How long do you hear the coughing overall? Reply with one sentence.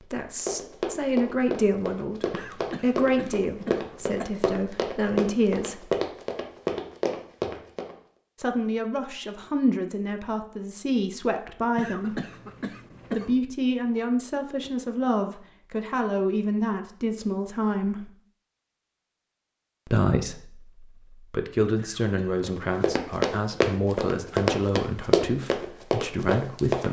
You can hear the coughing for 4 seconds altogether.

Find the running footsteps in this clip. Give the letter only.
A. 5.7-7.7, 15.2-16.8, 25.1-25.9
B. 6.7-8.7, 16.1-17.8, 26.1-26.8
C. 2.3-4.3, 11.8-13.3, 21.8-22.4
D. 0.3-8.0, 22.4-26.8
D.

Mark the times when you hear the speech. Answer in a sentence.
The speech can be heard from 0.0 to 5.9 s, from 8.4 to 12.2 s, from 13.2 to 18.1 s and from 19.9 to 26.8 s.